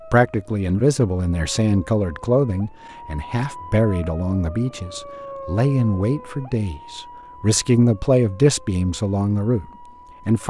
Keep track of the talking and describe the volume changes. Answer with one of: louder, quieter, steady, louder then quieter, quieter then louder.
steady.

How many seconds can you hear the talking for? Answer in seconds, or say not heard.
10 s.